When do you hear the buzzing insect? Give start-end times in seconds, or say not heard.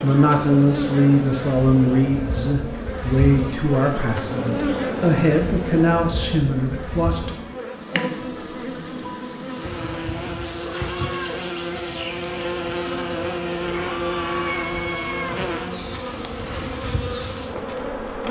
0.0-18.2.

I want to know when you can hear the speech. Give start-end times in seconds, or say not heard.
0.0-7.3.